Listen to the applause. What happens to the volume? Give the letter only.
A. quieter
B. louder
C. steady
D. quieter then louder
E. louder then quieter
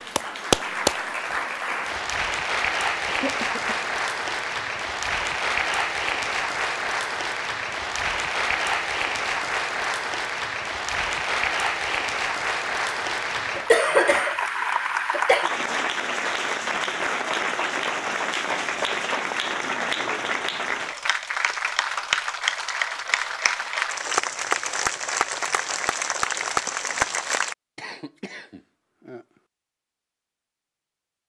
C.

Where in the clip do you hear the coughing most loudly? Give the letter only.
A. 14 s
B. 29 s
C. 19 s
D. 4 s
A.